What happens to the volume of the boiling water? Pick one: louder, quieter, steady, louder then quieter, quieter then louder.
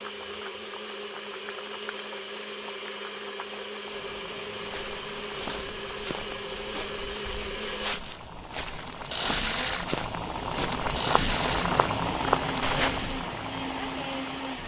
louder.